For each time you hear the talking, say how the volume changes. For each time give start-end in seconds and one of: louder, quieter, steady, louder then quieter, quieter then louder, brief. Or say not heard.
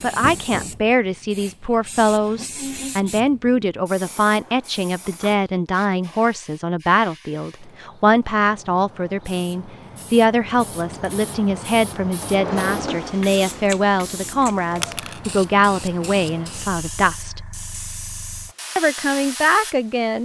0.0-17.4 steady
18.8-20.2 brief.